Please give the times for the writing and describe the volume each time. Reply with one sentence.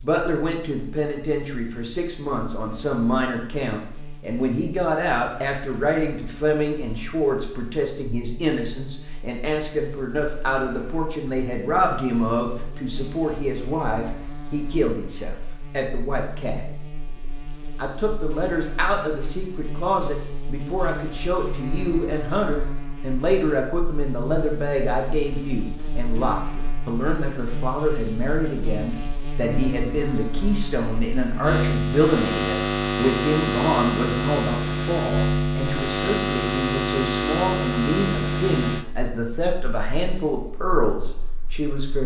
The writing can't be heard in this clip.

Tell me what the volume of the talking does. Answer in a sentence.
The volume of the talking stays about the same.